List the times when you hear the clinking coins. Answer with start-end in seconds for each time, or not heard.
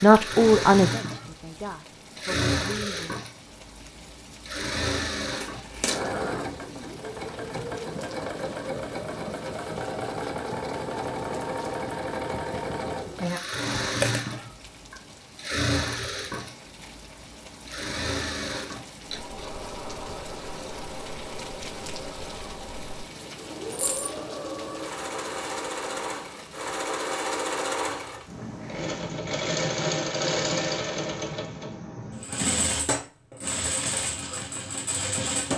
5.4-6.0, 14.0-14.4, 23.7-24.1.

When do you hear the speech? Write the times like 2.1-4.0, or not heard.
0.0-3.1.